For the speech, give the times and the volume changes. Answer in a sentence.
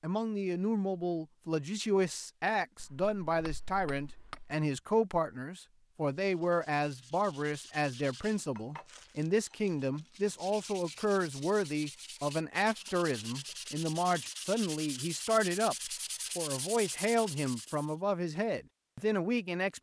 The speech can be heard from 0.0 to 19.7 s, at a steady volume.